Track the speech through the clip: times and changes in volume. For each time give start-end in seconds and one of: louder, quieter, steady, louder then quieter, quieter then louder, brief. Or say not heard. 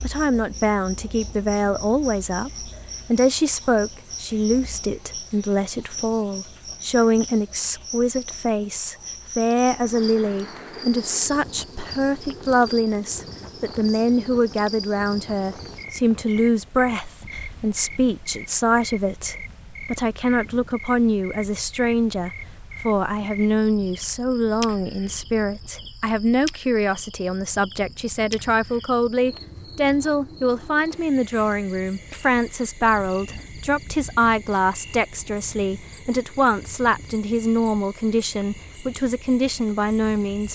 0.0-40.4 steady.